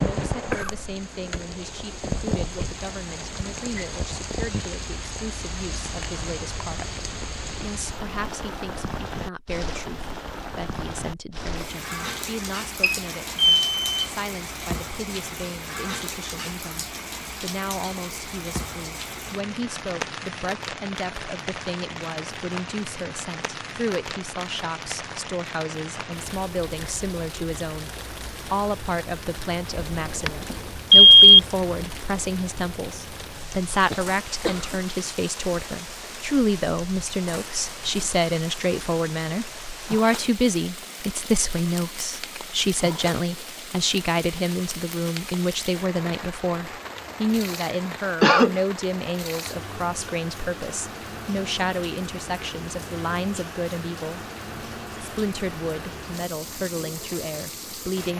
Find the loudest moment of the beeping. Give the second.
31 s.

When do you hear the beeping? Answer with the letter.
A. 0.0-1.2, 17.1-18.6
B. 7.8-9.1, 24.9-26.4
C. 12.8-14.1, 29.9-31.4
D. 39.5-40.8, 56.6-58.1
C.